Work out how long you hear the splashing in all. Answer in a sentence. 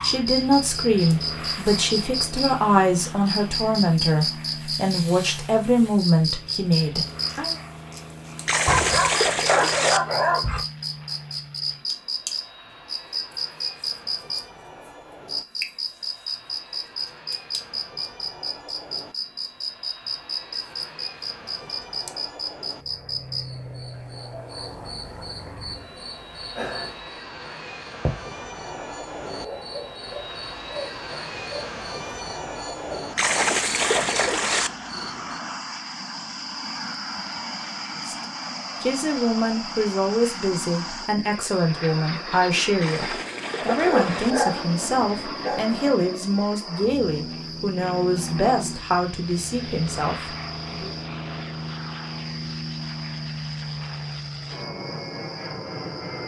The splashing can be heard for 5 seconds in total.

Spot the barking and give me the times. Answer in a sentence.
You can hear the barking from 8.7 to 10.7 s and from 43.7 to 45.6 s.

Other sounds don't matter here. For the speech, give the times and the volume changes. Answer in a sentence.
You can hear the speech from 0.0 to 7.5 s, at a steady volume; and from 38.0 to 50.9 s, at a steady volume.